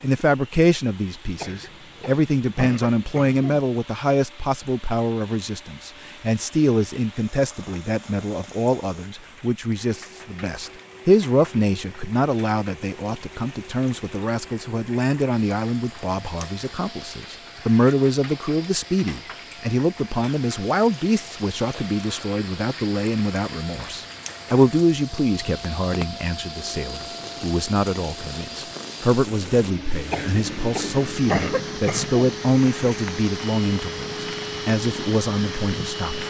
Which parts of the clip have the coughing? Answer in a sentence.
You can hear the coughing from 1.4 to 3.6 s and from 30.1 to 32.4 s.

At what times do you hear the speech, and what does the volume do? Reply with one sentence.
The speech can be heard from 0.0 to 36.2 s, at a steady volume.